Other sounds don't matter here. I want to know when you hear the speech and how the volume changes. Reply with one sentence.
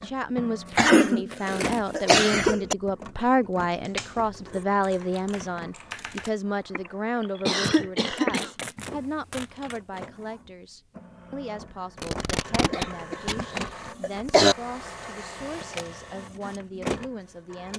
The speech can be heard from 0.0 to 17.7 s, getting quieter.